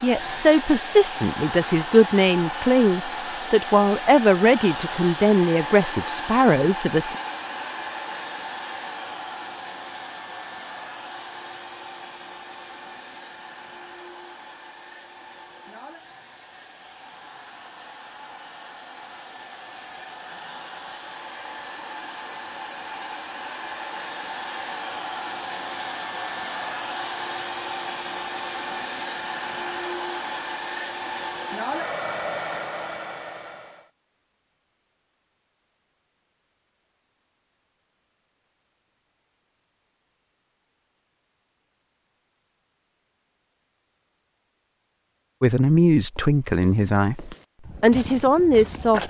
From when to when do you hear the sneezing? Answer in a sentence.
You can't hear the sneezing here.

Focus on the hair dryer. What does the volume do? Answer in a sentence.
The loudness of the hair dryer goes down, then up.